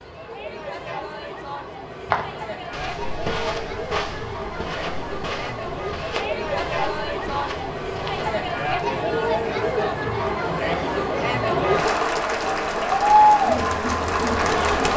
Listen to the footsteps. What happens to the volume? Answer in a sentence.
The loudness of the footsteps goes down.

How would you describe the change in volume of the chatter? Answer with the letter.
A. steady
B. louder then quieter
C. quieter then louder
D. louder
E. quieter
D.